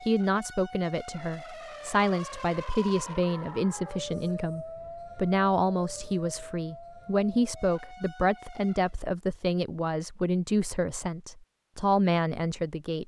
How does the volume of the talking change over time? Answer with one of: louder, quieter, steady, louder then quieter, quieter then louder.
steady.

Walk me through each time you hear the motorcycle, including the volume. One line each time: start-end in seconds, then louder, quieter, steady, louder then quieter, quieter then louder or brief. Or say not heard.
not heard.